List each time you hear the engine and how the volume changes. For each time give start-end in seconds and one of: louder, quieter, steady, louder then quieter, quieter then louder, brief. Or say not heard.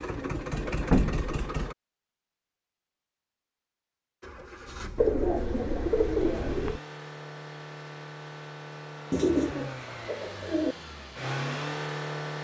0.0-1.8 brief
4.2-12.3 louder.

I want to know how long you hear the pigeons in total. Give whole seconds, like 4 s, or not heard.
5 s.